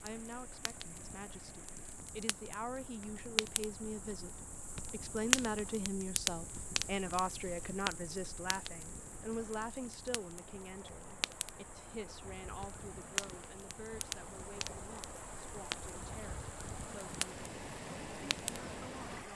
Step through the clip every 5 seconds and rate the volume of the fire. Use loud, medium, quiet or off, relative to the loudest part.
medium, loud, medium, medium.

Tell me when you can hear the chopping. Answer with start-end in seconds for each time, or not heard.
not heard.